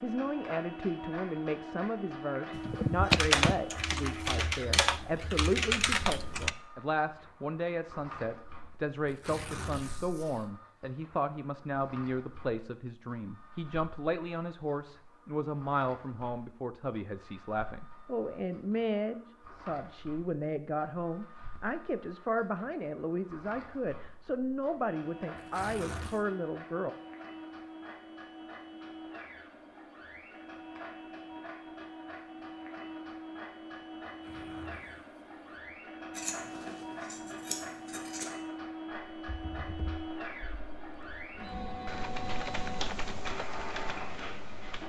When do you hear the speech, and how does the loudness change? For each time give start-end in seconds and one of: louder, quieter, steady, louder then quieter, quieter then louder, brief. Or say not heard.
0.0-26.9 steady.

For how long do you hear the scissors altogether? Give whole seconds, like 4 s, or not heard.
2 s.